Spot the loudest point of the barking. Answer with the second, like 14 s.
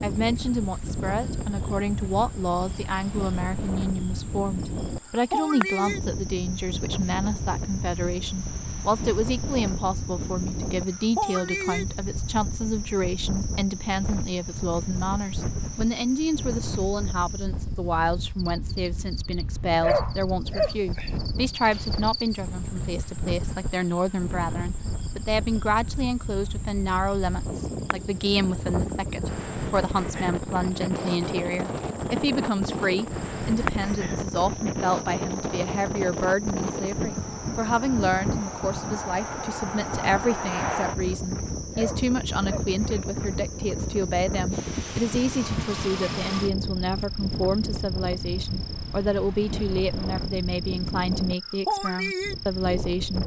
20 s.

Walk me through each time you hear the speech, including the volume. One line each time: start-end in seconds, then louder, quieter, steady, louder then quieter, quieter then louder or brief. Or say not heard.
0.0-53.2 steady.